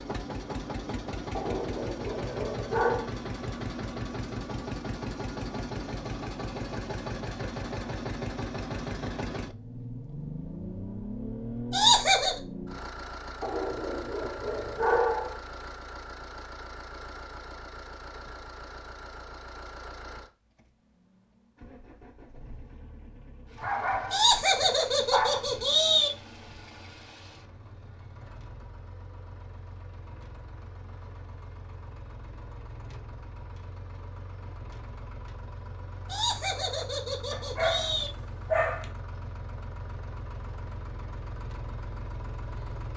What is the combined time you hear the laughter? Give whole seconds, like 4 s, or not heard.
5 s.